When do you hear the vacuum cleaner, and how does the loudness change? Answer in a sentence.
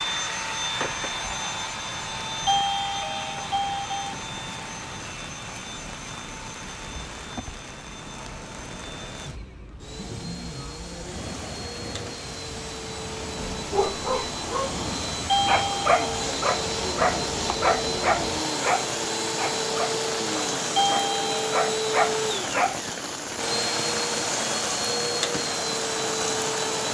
You can hear the vacuum cleaner from 0.0 to 26.8 s, getting quieter then louder.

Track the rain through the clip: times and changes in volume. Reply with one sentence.
The rain can be heard from 0.0 to 26.8 s, getting louder.